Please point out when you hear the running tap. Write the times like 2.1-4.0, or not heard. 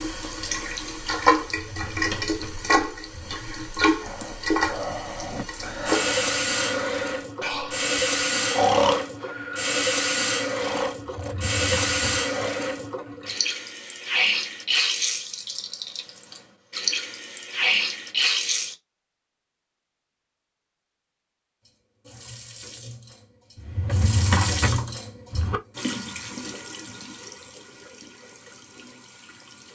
0.0-18.8, 21.6-29.7.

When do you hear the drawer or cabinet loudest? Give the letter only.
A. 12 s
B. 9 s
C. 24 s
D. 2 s
C.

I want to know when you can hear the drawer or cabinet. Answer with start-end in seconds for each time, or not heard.
1.4-3.4, 11.1-12.3, 23.6-25.6.